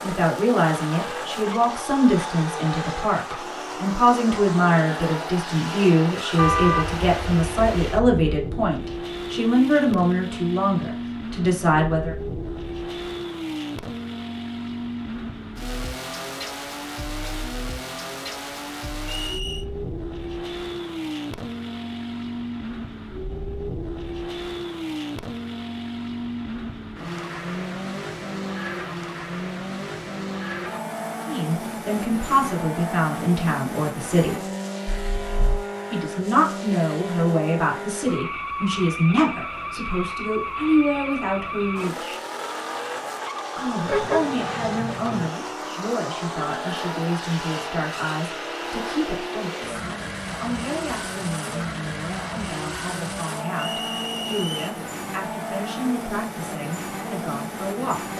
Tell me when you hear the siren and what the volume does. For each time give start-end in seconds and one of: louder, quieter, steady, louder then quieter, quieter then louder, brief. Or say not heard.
not heard.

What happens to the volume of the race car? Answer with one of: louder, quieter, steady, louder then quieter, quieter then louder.
steady.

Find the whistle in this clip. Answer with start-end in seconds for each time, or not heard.
19.1-19.6, 53.5-54.6.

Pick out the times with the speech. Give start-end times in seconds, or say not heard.
0.0-12.2, 31.2-34.4, 35.9-42.2, 43.5-58.1.